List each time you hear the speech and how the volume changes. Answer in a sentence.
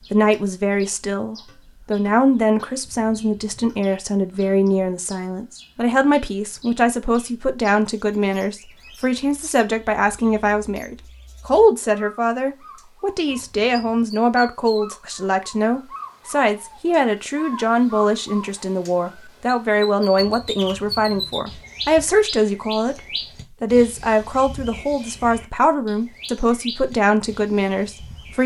You can hear the speech from 0.1 to 28.4 s, at a steady volume.